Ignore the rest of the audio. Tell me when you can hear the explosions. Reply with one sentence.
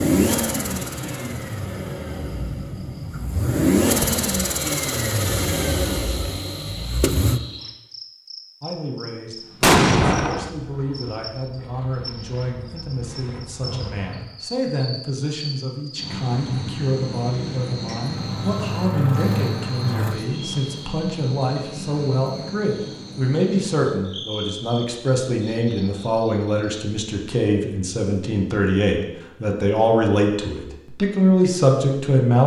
The explosions can be heard from 9.6 to 10.5 s.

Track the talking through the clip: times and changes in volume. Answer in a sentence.
The talking can be heard from 8.6 to 32.4 s, getting louder.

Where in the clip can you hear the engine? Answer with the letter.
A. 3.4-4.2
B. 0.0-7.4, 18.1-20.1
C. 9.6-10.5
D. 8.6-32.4
B.